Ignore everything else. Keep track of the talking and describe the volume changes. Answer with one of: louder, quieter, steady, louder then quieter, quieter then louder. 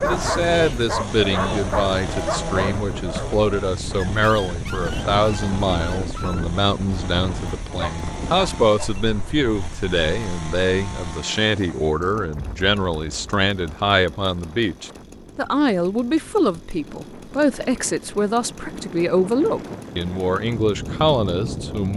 steady.